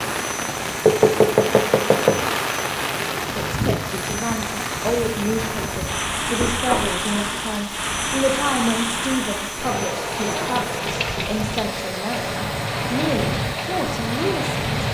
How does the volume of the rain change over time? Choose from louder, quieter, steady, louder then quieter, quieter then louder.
steady.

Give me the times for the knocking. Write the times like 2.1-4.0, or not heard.
0.8-2.2, 6.3-7.0, 10.2-11.3.